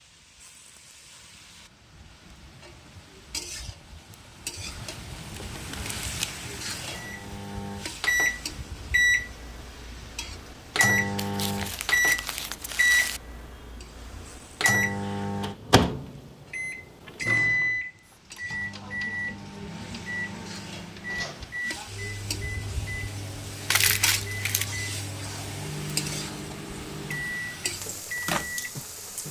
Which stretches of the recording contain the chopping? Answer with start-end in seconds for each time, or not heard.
not heard.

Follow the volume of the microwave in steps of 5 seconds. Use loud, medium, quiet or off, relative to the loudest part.
off, loud, loud, loud, medium, medium.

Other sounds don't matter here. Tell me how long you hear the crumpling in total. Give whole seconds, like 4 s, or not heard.
5 s.